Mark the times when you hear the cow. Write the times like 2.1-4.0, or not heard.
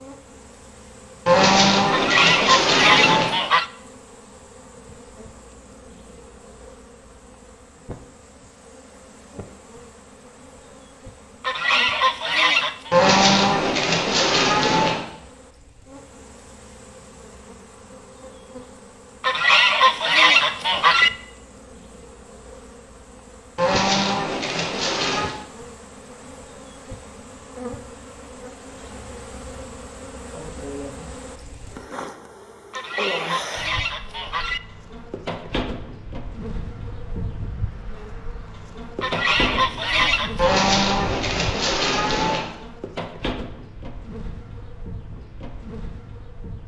1.2-3.2, 12.9-14.9, 23.6-25.4, 40.4-42.4.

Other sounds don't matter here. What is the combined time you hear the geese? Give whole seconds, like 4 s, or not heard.
9 s.